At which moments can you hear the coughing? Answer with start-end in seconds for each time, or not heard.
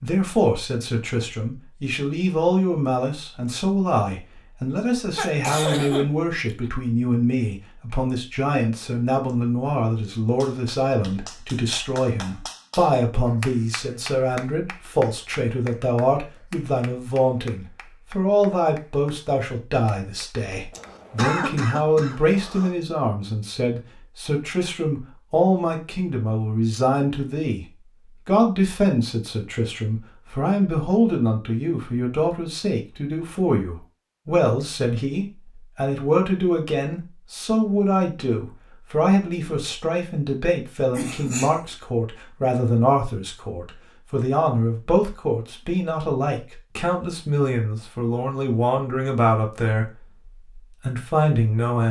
5.2-6.7, 20.7-22.8, 40.9-41.8.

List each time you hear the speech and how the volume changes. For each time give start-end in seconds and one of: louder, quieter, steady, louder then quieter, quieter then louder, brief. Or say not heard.
0.0-27.6 steady
28.2-49.9 steady
50.6-51.8 brief.